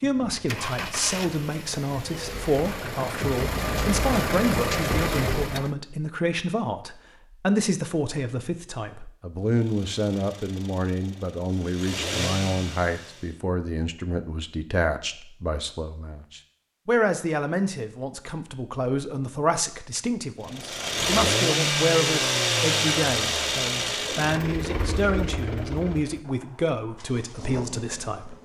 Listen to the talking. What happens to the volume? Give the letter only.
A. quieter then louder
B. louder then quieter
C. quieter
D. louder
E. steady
E.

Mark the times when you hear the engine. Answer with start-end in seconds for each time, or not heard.
0.0-5.7, 9.4-13.4, 20.4-28.4.